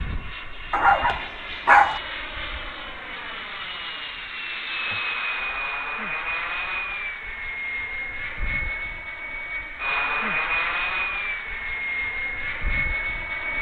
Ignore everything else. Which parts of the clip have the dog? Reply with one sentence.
The dog can be heard from 0.7 to 2.0 s.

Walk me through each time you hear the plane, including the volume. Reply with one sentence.
The plane can be heard from 0.0 to 13.5 s, getting louder.